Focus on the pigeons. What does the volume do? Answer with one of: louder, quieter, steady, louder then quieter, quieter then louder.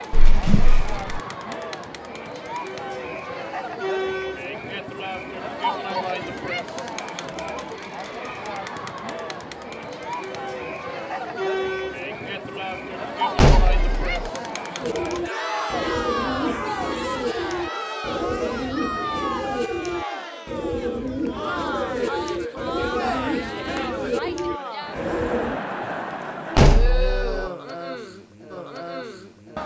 steady.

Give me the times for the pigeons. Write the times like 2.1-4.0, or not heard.
14.8-25.6.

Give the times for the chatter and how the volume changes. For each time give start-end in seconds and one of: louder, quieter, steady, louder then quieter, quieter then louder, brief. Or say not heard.
0.0-29.6 steady.